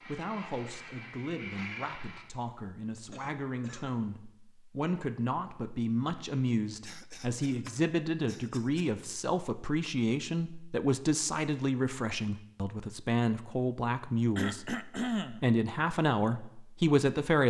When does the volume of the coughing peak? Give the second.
15 s.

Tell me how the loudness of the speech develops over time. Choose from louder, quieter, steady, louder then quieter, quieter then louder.
louder.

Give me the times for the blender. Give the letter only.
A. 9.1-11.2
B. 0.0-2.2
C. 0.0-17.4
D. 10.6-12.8
B.